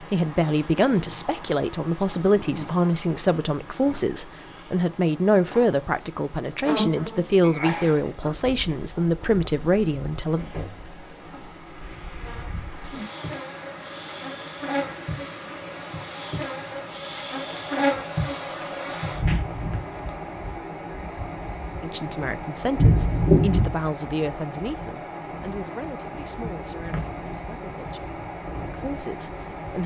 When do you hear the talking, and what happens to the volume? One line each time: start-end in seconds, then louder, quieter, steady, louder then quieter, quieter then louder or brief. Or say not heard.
0.0-10.4 steady
21.8-29.8 quieter then louder.